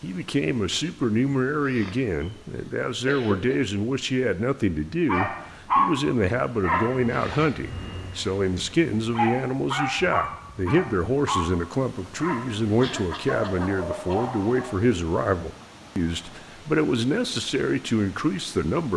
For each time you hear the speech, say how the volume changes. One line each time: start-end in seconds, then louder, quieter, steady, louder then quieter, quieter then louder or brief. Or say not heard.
0.0-18.9 steady.